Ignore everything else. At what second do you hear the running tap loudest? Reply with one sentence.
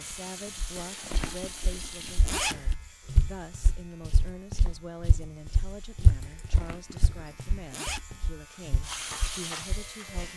The loudest moment of the running tap is at 9 seconds.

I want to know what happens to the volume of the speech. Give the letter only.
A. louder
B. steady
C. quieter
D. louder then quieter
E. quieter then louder
B.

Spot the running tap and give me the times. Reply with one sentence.
You can hear the running tap from 0.0 to 2.3 s and from 8.8 to 10.2 s.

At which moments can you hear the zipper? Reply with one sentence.
You can hear the zipper from 0.8 to 2.8 s and from 6.2 to 8.1 s.